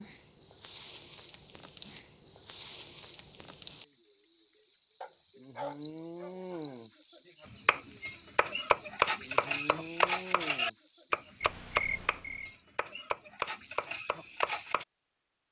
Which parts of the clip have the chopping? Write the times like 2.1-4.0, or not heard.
7.5-14.8.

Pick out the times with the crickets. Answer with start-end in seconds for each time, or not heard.
0.0-12.4.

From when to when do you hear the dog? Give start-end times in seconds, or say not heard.
5.0-6.3.